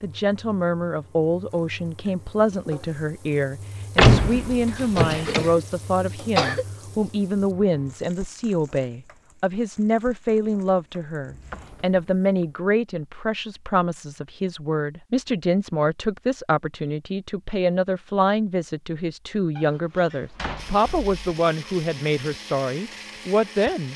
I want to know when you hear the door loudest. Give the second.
4 s.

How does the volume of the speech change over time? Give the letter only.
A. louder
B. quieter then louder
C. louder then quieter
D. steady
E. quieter
D.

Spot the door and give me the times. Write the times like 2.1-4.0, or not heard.
4.0-5.5, 11.2-12.4, 19.6-21.1.